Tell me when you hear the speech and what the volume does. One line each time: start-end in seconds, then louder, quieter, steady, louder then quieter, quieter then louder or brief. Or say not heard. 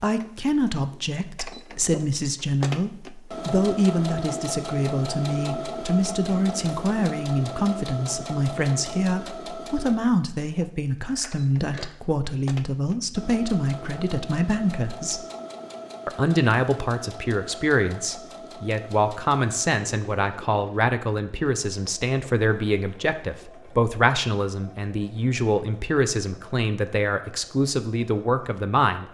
0.0-15.2 steady
16.1-29.1 steady.